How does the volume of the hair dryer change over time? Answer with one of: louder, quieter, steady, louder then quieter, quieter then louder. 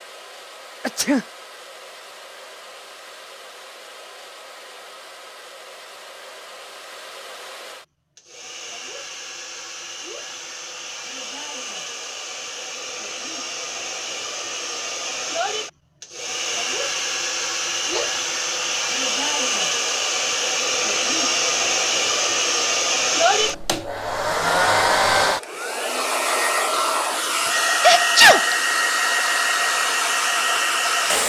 louder.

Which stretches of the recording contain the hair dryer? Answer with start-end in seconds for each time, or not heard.
0.0-31.2.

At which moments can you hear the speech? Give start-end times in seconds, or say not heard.
not heard.